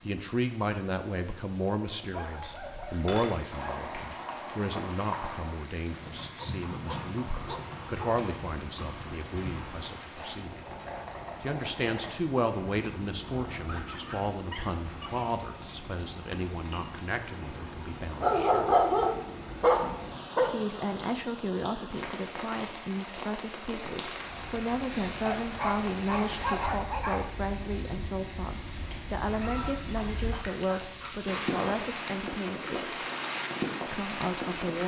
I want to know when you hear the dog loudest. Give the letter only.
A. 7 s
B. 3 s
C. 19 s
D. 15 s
C.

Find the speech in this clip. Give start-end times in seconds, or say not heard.
0.0-10.7, 11.4-18.8, 20.4-32.8, 33.9-34.8.